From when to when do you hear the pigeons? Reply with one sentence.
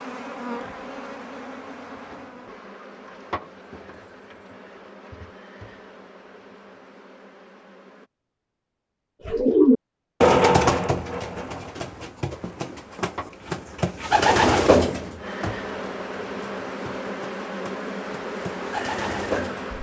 You can hear the pigeons from 9.2 to 19.7 s.